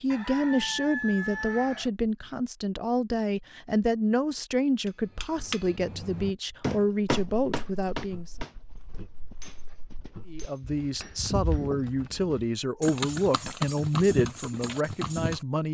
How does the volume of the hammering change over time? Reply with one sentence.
The loudness of the hammering goes up, then down.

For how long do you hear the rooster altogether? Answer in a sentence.
The rooster can be heard for 2 seconds in total.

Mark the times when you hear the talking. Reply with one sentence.
The talking can be heard from 0.0 to 8.3 s and from 10.2 to 15.6 s.